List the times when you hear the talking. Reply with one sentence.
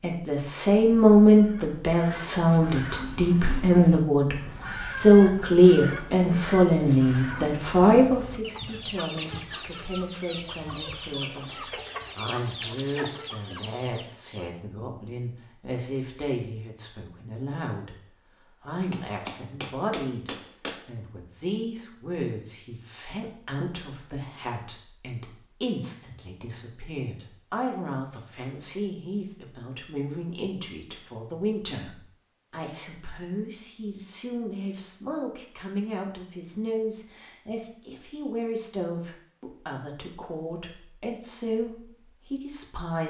The talking can be heard from 0.0 to 43.0 s.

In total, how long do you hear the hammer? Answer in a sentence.
You can hear the hammer for 2 seconds altogether.